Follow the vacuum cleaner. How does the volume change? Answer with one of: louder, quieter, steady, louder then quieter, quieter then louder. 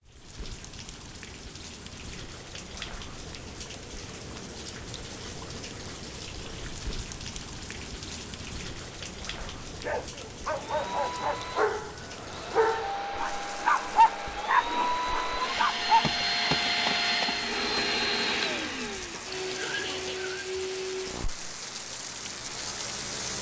louder then quieter.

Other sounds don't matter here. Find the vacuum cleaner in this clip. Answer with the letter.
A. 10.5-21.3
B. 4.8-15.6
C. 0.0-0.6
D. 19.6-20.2
A.